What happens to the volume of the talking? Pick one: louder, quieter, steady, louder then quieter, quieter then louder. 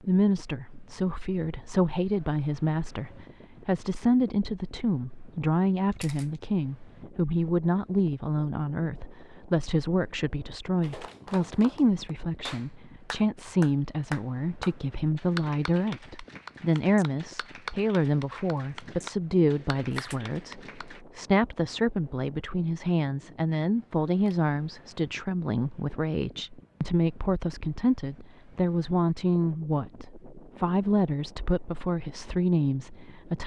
steady.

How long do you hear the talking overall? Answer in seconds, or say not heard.
33 s.